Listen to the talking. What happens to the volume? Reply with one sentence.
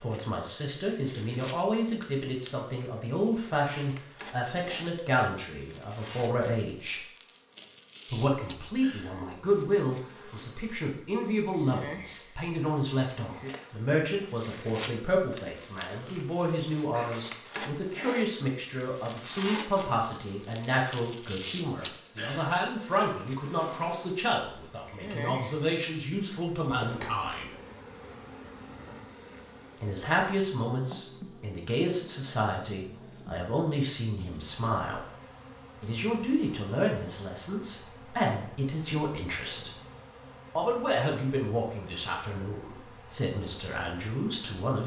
The loudness of the talking stays about the same.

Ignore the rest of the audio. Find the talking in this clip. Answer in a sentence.
The talking can be heard from 0.0 to 7.0 s, from 8.1 to 27.5 s, from 29.8 to 35.0 s, from 35.8 to 39.7 s and from 40.5 to 44.8 s.